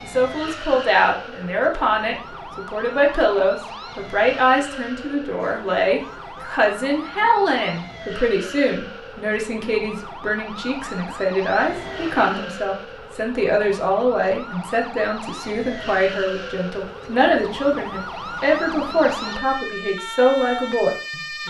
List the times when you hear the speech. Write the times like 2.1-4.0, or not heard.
0.0-21.4.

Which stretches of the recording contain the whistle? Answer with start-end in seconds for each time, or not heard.
not heard.